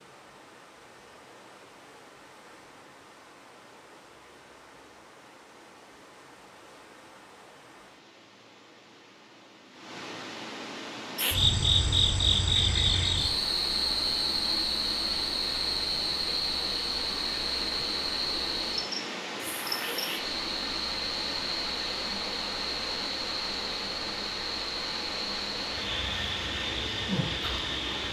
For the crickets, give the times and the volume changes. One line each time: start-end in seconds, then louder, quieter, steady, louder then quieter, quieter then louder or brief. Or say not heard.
11.2-28.0 quieter.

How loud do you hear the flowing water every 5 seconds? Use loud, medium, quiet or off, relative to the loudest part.
quiet, quiet, loud, loud, loud, loud.